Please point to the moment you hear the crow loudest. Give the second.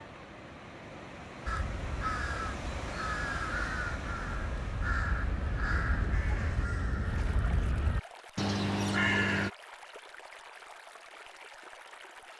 9 s.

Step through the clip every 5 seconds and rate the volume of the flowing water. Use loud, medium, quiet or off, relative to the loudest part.
loud, medium, medium.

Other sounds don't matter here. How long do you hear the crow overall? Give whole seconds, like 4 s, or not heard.
8 s.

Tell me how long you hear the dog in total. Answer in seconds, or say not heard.
not heard.